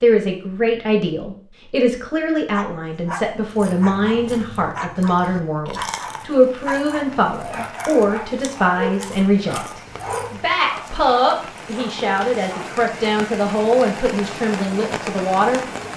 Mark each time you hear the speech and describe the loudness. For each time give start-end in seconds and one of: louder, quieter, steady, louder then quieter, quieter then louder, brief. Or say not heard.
0.0-15.6 steady.